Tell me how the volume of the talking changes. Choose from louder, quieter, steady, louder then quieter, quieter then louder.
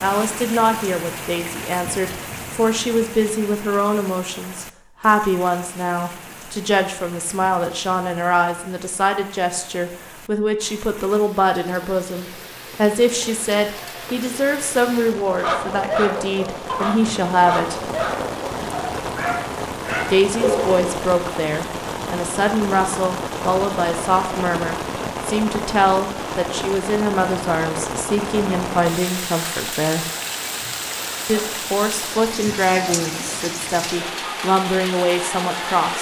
steady.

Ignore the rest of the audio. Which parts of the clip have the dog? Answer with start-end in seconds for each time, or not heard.
15.2-20.9.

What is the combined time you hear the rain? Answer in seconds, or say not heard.
36 s.